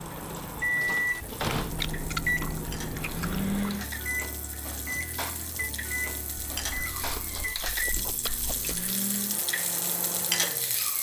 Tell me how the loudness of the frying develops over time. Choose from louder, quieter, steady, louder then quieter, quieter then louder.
louder.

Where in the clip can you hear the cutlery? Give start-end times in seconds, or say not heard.
not heard.